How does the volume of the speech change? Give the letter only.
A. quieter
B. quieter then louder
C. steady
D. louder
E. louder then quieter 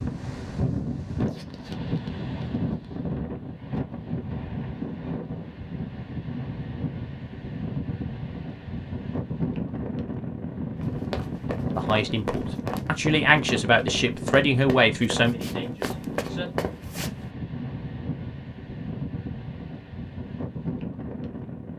E.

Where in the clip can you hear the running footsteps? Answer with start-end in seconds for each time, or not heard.
10.8-17.1.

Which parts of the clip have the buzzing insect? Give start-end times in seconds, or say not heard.
not heard.